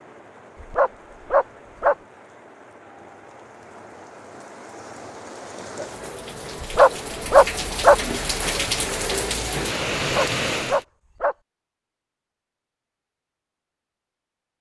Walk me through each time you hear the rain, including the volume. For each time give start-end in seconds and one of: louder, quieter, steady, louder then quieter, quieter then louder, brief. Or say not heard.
0.0-10.8 louder.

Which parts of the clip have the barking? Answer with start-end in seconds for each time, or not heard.
0.6-1.9, 6.6-8.0, 9.9-11.3.